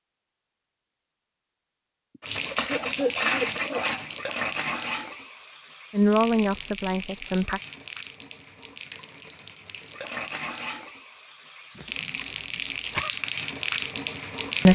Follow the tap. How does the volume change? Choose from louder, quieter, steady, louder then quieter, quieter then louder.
quieter then louder.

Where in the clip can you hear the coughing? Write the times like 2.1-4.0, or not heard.
2.1-3.8, 11.8-13.1.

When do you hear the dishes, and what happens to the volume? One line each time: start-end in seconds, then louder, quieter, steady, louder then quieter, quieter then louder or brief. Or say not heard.
not heard.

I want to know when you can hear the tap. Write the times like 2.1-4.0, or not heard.
2.2-14.6.